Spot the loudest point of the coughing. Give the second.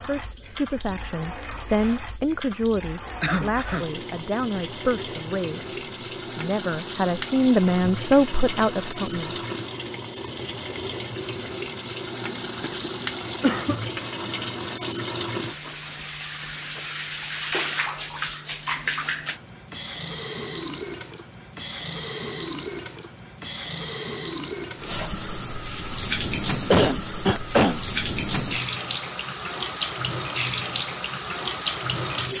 27 s.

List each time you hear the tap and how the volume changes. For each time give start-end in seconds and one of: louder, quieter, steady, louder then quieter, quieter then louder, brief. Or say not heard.
0.0-32.3 louder.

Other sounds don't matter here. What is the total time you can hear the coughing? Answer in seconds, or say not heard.
3 s.